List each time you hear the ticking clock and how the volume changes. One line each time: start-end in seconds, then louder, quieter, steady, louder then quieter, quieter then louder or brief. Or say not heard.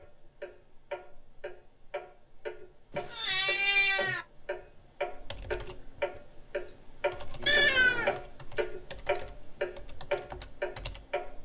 0.0-11.4 louder.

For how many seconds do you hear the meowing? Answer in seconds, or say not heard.
2 s.